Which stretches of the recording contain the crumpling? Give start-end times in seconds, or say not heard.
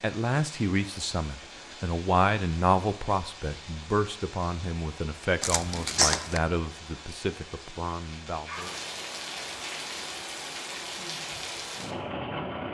5.4-6.4.